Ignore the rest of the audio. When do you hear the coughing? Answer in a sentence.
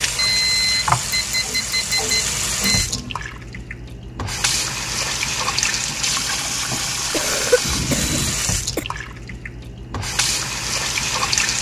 The coughing can be heard from 0.8 to 3.1 s and from 7.0 to 8.8 s.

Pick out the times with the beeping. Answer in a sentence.
The beeping can be heard from 0.1 to 2.9 s and from 7.6 to 8.4 s.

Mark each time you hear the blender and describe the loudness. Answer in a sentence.
The blender can't be heard in this clip.